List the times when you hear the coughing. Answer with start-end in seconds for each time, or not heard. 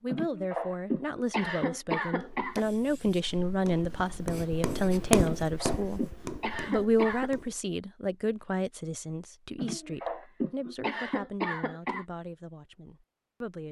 0.1-2.6, 5.2-7.3, 9.6-12.1.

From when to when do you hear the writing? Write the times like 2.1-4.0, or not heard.
2.1-7.7.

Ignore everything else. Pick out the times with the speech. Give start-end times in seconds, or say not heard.
0.0-6.0, 6.7-13.6.